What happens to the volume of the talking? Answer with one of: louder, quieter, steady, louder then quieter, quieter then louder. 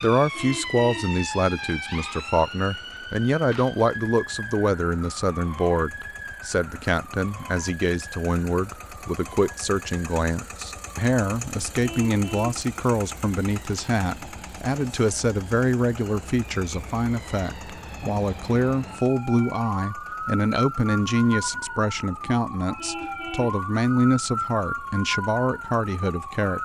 steady.